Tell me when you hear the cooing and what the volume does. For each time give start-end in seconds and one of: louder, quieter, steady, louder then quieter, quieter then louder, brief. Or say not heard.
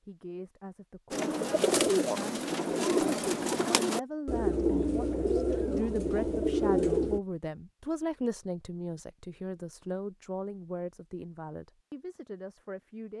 1.1-7.2 steady.